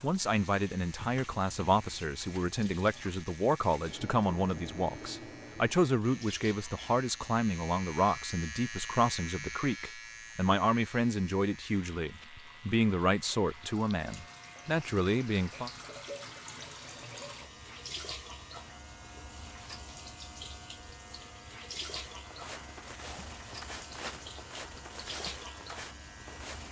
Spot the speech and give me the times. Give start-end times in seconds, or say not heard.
0.0-15.7.